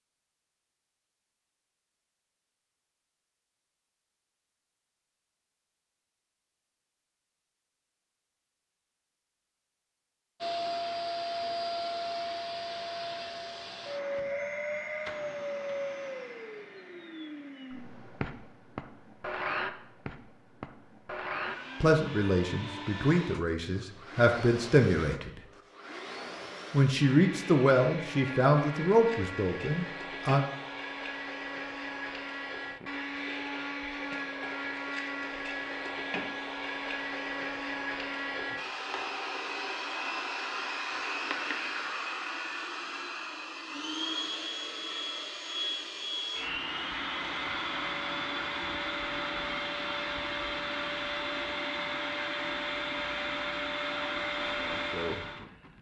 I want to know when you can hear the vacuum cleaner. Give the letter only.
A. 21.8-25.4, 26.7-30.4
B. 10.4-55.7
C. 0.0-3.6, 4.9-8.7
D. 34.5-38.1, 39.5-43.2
B.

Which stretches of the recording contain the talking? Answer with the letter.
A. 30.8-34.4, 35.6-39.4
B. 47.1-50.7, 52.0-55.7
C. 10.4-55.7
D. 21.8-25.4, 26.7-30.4
D.